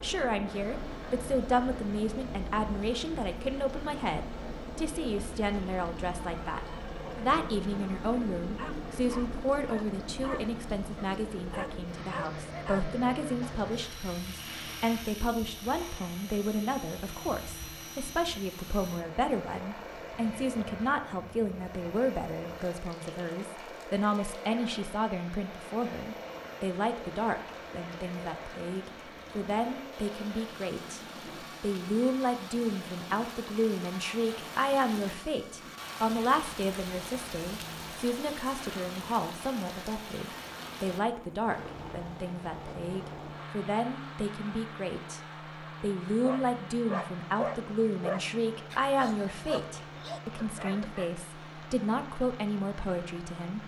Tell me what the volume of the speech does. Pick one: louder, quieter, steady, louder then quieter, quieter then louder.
steady.